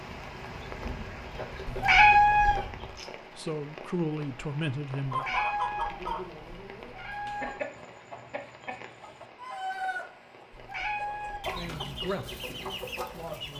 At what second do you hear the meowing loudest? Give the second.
2 s.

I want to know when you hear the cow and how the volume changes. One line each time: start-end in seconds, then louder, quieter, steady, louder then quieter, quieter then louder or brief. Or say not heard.
not heard.